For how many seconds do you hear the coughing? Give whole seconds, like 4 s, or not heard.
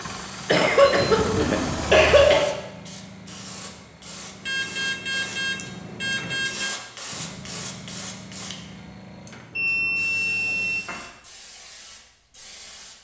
2 s.